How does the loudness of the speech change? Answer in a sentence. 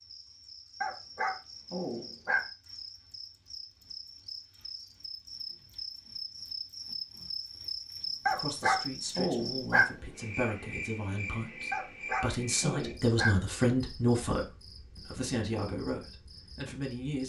The loudness of the speech goes up, then down.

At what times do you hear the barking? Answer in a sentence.
The barking can be heard from 0.8 to 2.4 s, from 8.2 to 9.8 s and from 11.7 to 13.3 s.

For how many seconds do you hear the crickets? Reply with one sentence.
You can hear the crickets for 17 seconds altogether.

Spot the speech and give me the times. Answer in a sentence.
The speech can be heard from 8.2 to 17.2 s.